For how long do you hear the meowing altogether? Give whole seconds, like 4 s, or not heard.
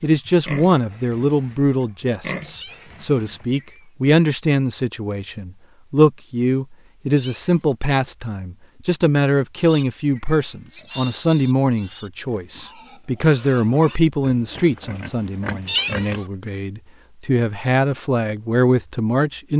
2 s.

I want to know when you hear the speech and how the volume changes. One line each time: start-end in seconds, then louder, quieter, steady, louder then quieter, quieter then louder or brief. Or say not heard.
0.0-19.5 steady.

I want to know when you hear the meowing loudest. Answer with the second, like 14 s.
16 s.